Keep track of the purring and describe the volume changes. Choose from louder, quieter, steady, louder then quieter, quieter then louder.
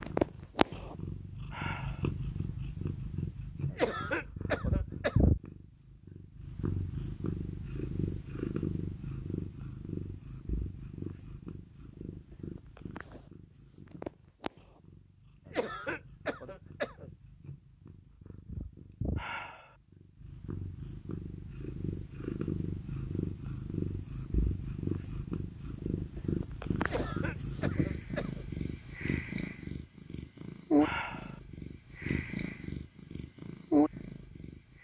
quieter then louder.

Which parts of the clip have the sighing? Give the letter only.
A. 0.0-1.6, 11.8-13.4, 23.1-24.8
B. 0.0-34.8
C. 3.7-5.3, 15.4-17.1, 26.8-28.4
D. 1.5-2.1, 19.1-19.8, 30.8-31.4
D.